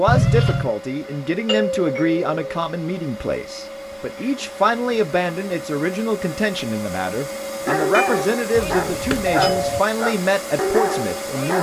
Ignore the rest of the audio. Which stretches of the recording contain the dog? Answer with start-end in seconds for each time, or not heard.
7.6-11.5.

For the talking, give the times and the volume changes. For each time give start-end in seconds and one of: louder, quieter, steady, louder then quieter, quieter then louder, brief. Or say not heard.
0.0-11.5 steady.